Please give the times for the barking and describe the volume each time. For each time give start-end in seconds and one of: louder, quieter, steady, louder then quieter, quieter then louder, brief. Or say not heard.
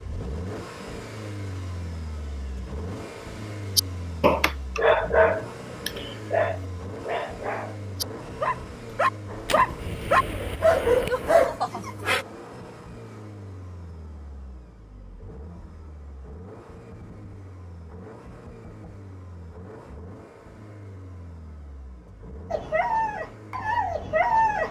3.8-12.2 quieter then louder
22.5-24.6 brief.